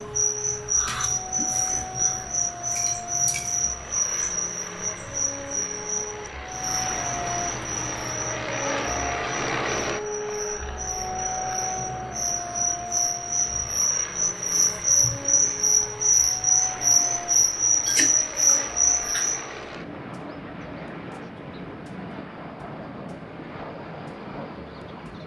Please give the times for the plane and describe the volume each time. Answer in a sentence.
You can hear the plane from 0.0 to 25.2 s, getting louder then quieter.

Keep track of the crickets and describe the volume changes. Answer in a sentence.
The volume of the crickets goes down, then up.